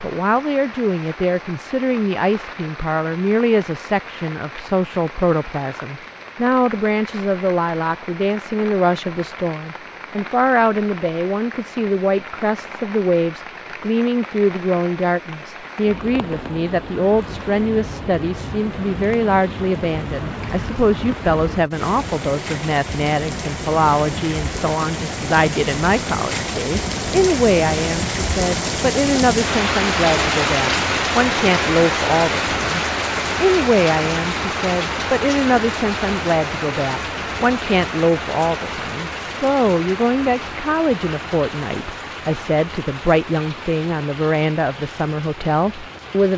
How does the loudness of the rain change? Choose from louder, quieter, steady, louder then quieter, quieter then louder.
louder then quieter.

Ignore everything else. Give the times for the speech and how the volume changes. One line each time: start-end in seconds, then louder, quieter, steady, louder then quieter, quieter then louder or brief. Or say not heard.
0.0-46.3 steady.